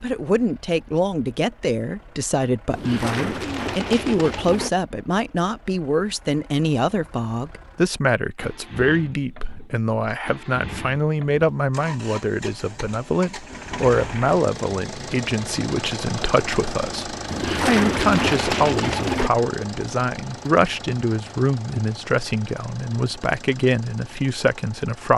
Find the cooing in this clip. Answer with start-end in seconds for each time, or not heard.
2.7-4.7, 17.2-19.3.